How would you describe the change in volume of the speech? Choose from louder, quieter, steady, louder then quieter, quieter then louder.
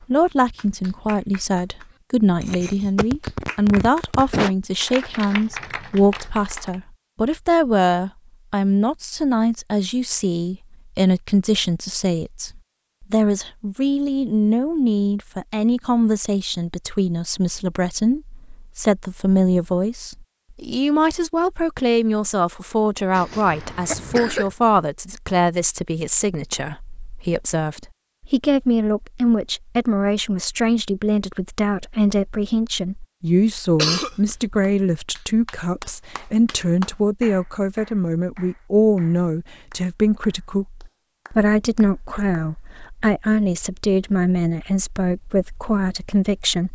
steady.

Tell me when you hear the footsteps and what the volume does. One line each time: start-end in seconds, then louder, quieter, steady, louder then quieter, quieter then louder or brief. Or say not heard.
not heard.